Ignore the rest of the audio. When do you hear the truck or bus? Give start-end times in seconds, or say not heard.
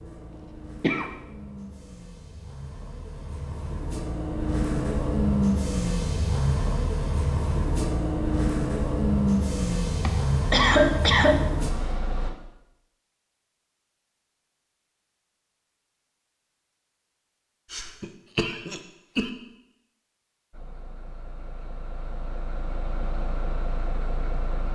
0.0-12.3, 20.5-24.7.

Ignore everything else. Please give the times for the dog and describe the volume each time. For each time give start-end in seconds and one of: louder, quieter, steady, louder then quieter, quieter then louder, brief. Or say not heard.
not heard.